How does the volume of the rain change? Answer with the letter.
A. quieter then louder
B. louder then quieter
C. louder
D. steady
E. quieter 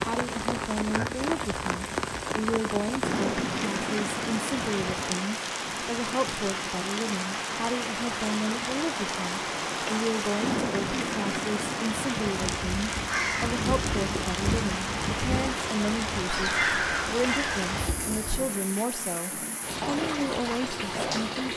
D.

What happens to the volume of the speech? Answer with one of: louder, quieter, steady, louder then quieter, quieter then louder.
steady.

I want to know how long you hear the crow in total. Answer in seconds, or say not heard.
6 s.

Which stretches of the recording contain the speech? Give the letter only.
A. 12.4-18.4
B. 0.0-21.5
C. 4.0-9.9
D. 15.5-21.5
B.